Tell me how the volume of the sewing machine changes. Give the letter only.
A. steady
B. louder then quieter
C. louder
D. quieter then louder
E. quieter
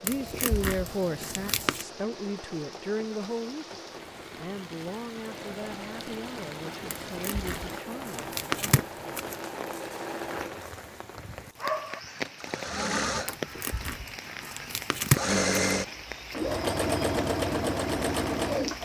C.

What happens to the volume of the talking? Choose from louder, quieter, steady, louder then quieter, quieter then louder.
quieter.